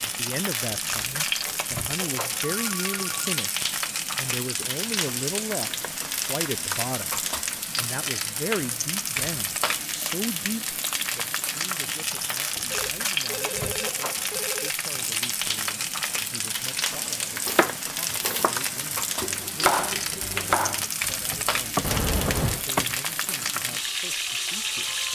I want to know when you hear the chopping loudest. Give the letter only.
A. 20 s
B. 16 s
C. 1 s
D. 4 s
A.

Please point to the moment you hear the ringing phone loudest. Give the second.
22 s.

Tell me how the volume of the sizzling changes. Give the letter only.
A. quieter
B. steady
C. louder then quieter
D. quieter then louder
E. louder
B.